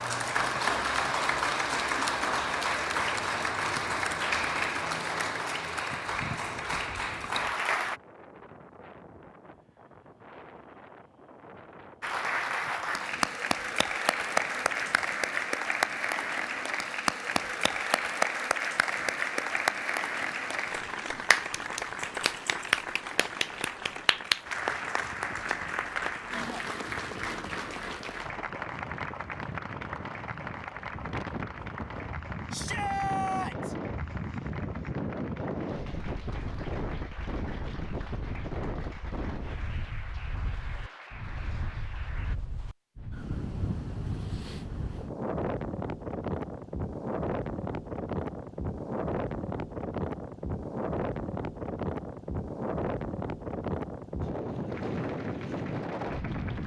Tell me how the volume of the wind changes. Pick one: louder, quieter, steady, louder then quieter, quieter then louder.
louder.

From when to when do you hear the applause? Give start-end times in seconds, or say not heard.
0.0-8.0, 12.0-42.4, 54.6-56.6.